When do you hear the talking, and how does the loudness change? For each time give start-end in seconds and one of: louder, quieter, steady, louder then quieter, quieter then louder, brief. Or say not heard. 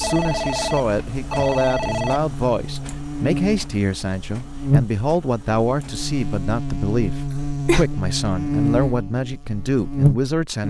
0.0-10.6 steady.